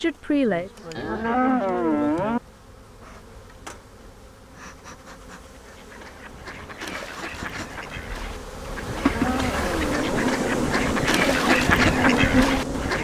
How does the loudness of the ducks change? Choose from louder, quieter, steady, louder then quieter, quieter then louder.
louder.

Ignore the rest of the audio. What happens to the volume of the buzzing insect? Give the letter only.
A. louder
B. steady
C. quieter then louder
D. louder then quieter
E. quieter
A.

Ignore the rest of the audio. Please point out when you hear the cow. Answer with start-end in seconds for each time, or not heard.
0.9-2.4, 8.8-10.3.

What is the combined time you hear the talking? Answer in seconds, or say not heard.
2 s.